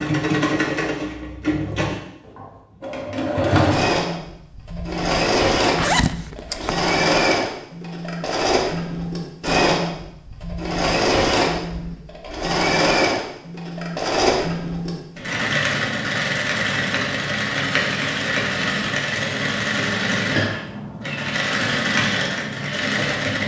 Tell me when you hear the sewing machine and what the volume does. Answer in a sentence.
The sewing machine can be heard from 0.0 to 23.4 s, at a steady volume.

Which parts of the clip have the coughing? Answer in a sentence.
You can't hear the coughing here.